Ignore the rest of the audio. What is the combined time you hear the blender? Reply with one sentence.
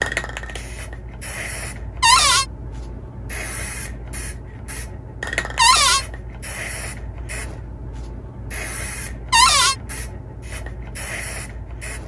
The blender can't be heard in this clip.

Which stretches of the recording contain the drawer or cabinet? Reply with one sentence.
You can hear the drawer or cabinet from 2.0 to 2.5 s, from 5.5 to 6.0 s and from 9.3 to 9.8 s.